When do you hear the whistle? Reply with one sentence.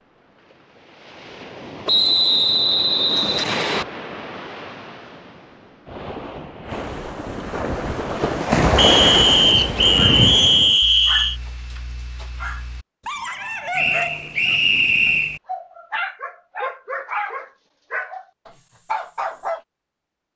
The whistle can be heard from 1.9 to 3.9 s, from 8.8 to 11.3 s and from 13.8 to 15.4 s.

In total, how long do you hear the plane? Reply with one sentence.
The plane can't be heard in this clip.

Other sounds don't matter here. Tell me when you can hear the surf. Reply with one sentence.
You can hear the surf from 0.0 to 10.8 s.